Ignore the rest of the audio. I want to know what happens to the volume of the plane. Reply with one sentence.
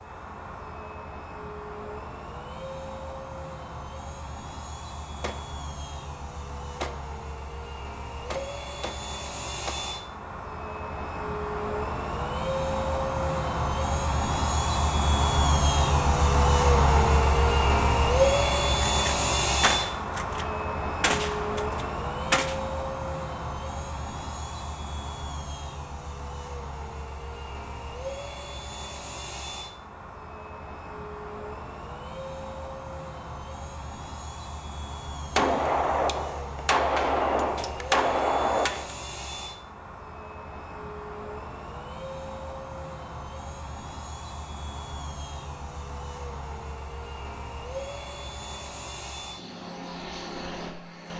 The volume of the plane goes up, then down.